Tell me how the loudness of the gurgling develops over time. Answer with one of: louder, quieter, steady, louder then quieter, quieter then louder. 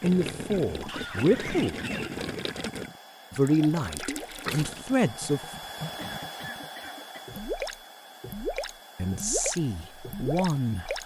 quieter then louder.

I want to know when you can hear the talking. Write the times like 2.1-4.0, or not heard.
0.0-1.8, 3.3-5.4, 8.9-11.0.